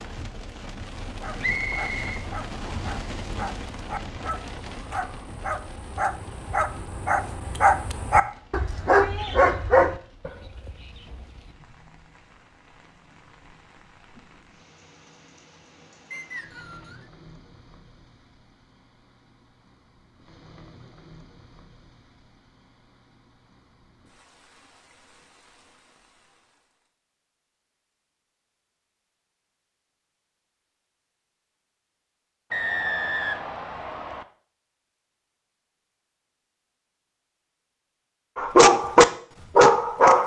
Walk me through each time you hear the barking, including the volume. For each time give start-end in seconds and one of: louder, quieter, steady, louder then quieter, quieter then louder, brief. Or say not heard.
1.1-11.2 louder
38.4-40.2 brief.